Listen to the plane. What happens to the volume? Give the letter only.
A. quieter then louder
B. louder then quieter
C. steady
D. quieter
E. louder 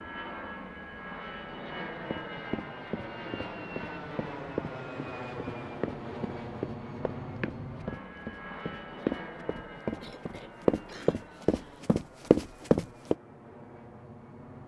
D.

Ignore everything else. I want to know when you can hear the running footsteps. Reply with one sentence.
You can hear the running footsteps from 2.1 to 13.2 s.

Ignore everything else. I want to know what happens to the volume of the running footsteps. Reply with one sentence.
The loudness of the running footsteps goes up.